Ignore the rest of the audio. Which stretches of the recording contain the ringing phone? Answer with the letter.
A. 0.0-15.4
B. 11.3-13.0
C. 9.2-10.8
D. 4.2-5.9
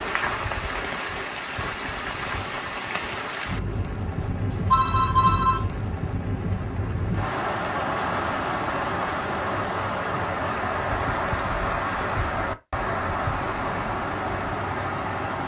D.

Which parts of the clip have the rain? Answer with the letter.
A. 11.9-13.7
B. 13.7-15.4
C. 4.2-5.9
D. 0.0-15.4
D.